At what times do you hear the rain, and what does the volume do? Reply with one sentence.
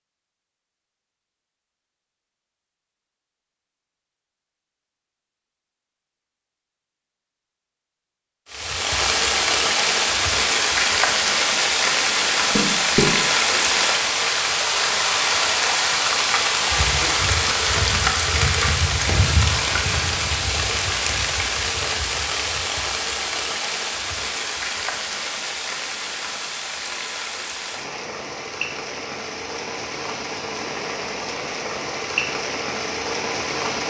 You can hear the rain from 8.5 to 33.8 s, getting quieter.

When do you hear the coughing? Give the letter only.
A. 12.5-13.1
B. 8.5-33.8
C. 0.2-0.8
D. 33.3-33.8
A.